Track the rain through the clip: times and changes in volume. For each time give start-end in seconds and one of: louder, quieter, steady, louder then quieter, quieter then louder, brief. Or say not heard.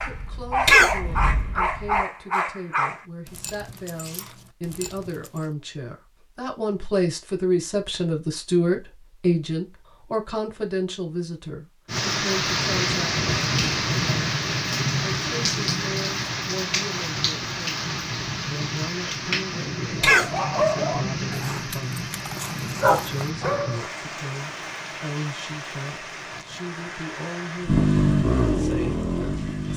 11.8-29.7 quieter.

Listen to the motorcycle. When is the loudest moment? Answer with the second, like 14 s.
28 s.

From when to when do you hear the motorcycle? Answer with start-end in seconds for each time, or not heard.
0.0-2.0, 27.6-29.7.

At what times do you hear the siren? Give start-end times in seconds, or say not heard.
not heard.